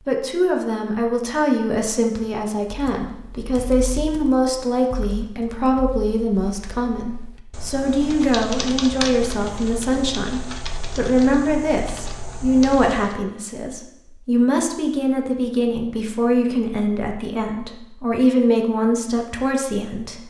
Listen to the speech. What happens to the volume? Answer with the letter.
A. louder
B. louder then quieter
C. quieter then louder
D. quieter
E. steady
E.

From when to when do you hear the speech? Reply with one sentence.
You can hear the speech from 0.0 to 20.2 s.